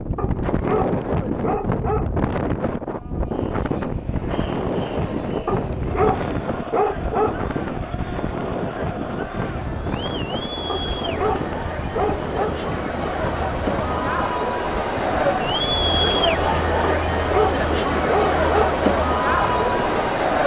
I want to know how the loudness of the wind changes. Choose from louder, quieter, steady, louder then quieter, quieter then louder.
quieter.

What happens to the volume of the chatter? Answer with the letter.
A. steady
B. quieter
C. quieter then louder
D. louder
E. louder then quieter
D.